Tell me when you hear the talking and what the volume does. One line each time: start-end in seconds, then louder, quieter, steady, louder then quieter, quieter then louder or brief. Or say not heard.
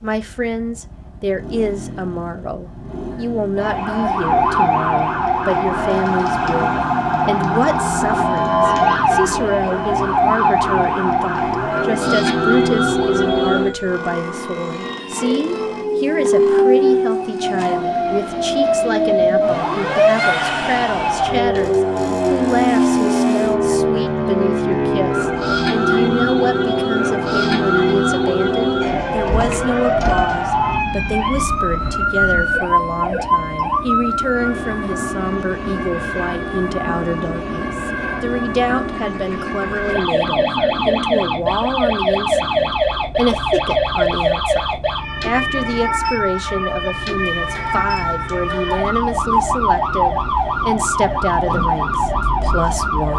0.0-53.1 steady.